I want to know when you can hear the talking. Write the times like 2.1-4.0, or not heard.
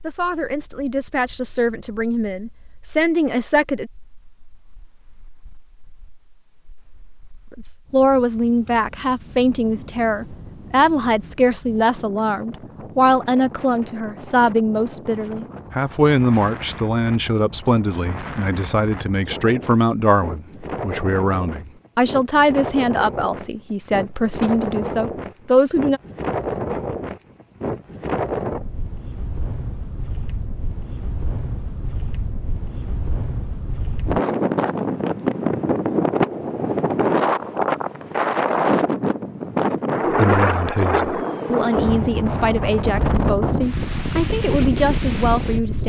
0.0-3.9, 7.5-26.0, 40.0-45.8.